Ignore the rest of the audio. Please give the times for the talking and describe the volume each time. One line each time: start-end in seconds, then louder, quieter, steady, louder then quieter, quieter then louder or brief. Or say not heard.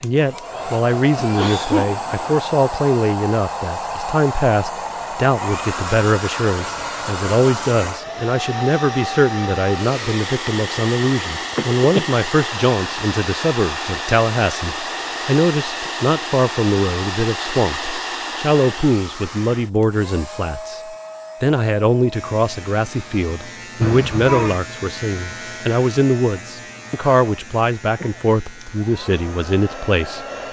0.0-20.8 steady
21.4-30.2 steady.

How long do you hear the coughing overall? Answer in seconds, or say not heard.
3 s.